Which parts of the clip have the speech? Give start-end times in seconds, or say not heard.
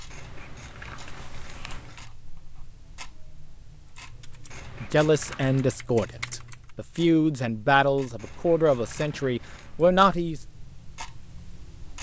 4.8-10.4.